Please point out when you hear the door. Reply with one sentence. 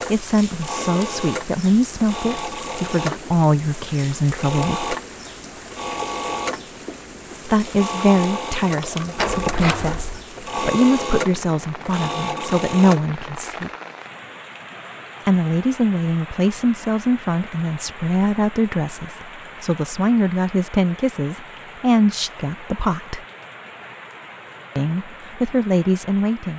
The door can be heard from 9.2 to 10.2 s.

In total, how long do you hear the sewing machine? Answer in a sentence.
The sewing machine can be heard for 13 seconds in total.